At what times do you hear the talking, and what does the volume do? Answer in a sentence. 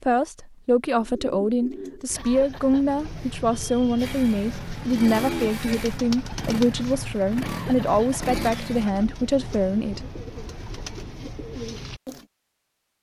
The talking can be heard from 0.0 to 10.0 s, at a steady volume.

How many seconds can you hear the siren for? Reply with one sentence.
You can't hear the siren here.